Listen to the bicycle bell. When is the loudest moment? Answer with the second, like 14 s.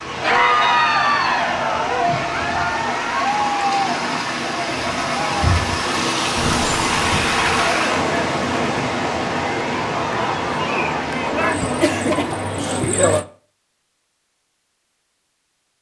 7 s.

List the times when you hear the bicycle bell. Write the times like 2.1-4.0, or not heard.
6.3-7.8.